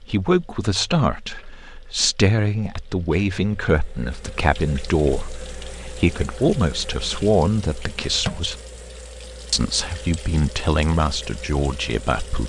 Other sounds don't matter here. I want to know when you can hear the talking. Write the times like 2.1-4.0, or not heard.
0.0-8.6, 9.5-12.4.